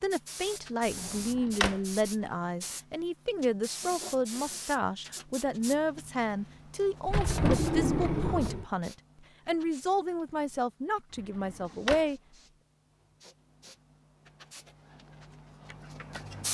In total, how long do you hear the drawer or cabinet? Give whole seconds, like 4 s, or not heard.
3 s.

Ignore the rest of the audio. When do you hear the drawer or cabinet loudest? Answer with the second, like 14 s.
8 s.